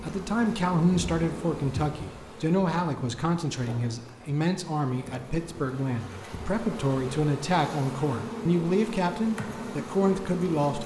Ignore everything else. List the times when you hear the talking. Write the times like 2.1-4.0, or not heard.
0.0-10.8.